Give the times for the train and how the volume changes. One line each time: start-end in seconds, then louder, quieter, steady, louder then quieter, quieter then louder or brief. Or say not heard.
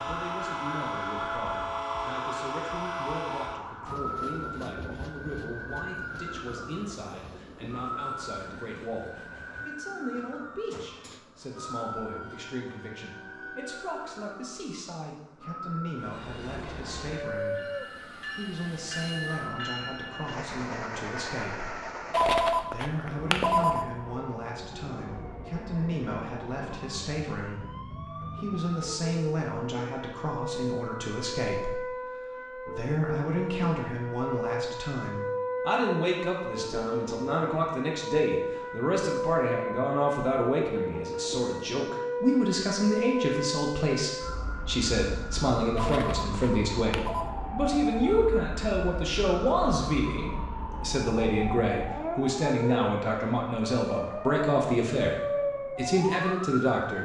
0.0-14.7 quieter
15.9-22.4 steady.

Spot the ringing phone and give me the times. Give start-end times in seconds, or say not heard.
22.1-23.9, 45.8-47.3.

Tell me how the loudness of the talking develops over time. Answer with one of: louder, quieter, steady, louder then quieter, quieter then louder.
louder.